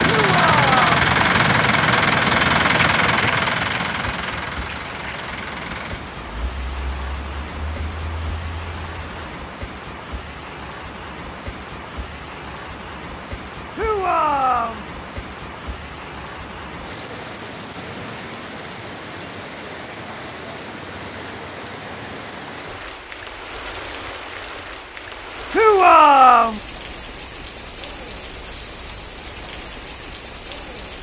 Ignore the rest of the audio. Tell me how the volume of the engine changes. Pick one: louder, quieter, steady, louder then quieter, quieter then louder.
quieter.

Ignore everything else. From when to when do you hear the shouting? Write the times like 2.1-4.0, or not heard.
0.0-0.9, 13.8-14.8, 25.5-26.6.